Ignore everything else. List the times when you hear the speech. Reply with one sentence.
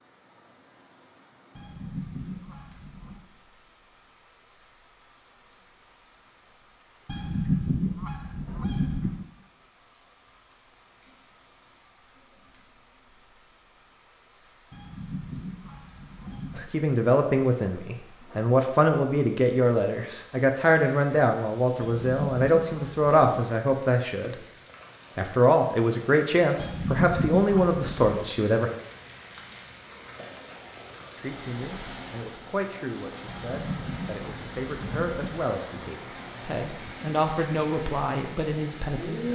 You can hear the speech from 16.6 to 24.4 s, from 25.1 to 28.7 s and from 31.1 to 39.3 s.